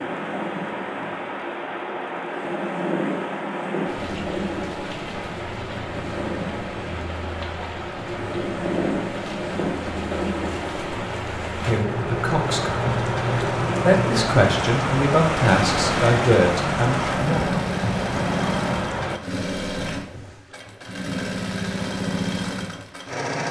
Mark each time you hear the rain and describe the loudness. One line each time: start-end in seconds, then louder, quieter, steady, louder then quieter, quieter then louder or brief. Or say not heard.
0.0-19.2 louder.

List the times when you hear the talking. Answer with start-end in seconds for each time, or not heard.
11.7-12.9, 13.8-17.6.